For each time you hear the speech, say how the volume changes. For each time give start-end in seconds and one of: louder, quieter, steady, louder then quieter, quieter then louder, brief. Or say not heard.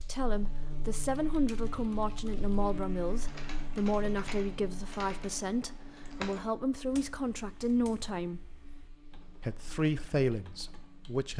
0.0-8.5 steady
9.4-11.3 brief.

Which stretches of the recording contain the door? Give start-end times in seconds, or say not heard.
not heard.